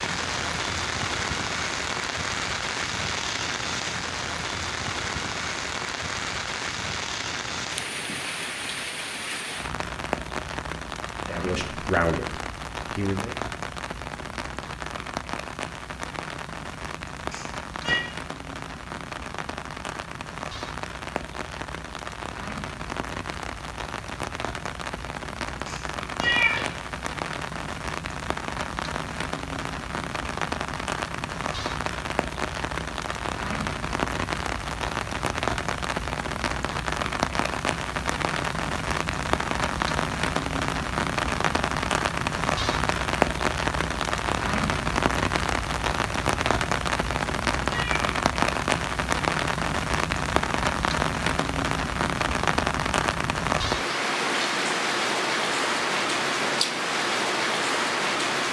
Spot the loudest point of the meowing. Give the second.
26 s.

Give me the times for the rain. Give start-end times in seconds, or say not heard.
0.0-58.4.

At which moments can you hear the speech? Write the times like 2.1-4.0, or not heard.
11.2-13.3.